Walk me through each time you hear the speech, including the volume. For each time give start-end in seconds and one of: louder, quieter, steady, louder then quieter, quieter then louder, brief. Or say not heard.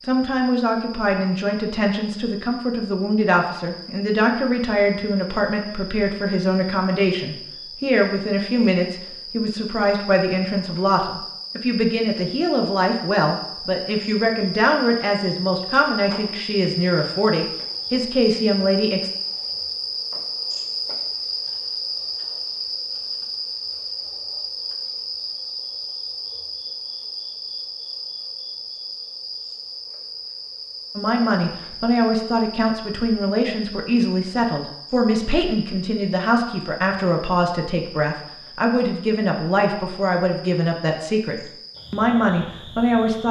0.0-19.1 steady
30.9-43.2 steady.